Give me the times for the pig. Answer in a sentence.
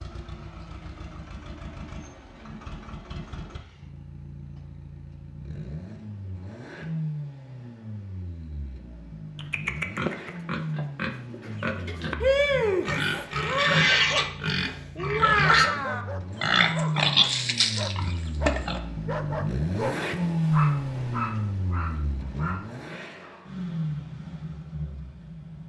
You can hear the pig from 9.3 to 18.8 s.